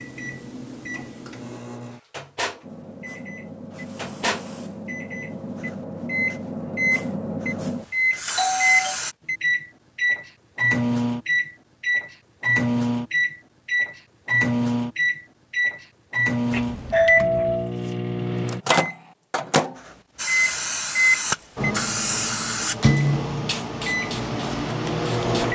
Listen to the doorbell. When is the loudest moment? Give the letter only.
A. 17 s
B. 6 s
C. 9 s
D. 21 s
A.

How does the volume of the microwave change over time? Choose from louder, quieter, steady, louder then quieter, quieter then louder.
louder.